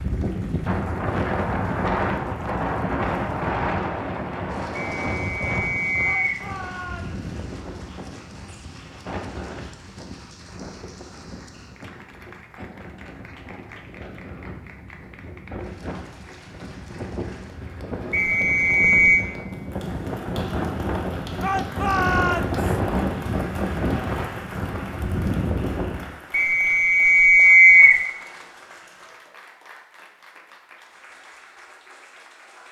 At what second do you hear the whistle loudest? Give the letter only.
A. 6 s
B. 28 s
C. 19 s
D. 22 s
B.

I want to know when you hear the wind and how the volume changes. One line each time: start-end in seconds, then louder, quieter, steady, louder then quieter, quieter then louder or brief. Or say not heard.
0.0-26.1 quieter then louder.